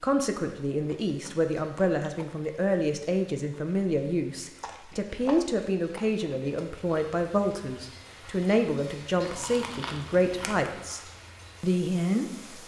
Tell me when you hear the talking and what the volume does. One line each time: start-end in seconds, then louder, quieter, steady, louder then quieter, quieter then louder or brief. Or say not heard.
0.0-11.0 steady
11.6-12.6 brief.